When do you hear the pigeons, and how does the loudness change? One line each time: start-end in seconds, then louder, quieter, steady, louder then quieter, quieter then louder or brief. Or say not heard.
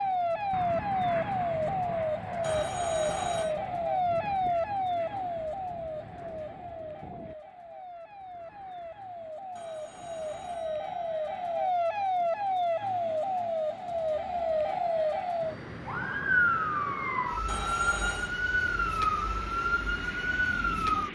not heard.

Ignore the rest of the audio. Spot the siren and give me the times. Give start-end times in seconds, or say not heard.
0.0-21.1.